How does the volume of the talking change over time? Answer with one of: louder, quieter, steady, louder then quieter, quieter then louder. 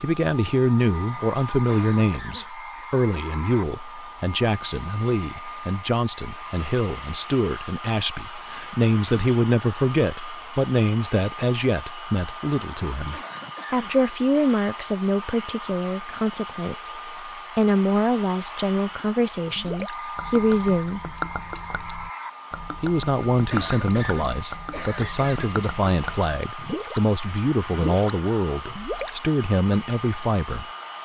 steady.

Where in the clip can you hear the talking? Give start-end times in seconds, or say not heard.
0.0-21.1, 22.8-30.6.